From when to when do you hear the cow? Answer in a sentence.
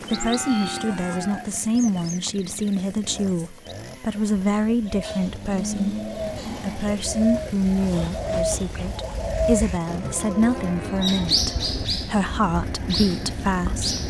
The cow can be heard from 0.1 to 1.6 s, from 5.0 to 6.9 s and from 9.8 to 11.9 s.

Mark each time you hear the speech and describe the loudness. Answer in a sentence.
You can hear the speech from 0.1 to 14.0 s, at a steady volume.